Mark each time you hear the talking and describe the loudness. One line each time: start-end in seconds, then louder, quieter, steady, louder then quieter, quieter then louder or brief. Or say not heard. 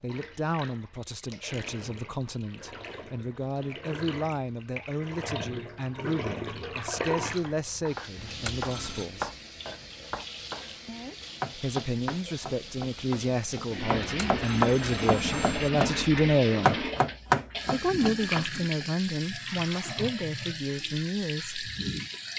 0.0-9.3 steady
11.6-16.9 louder
17.7-21.7 steady.